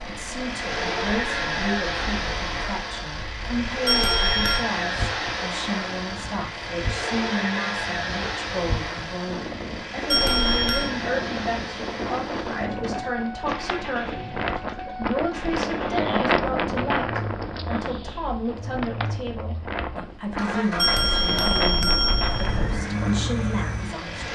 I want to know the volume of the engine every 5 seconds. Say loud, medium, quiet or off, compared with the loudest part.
loud, loud, medium, medium, loud.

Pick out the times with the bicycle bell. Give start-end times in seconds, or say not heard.
3.9-4.7, 10.1-10.9, 20.8-22.8.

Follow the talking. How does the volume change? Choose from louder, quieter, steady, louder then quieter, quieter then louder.
steady.